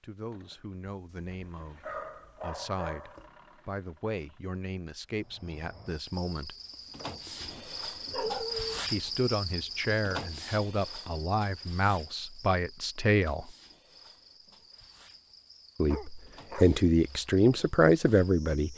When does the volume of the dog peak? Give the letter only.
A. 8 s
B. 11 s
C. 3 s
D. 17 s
A.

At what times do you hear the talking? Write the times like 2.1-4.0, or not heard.
0.0-6.5, 8.9-13.5, 15.8-18.7.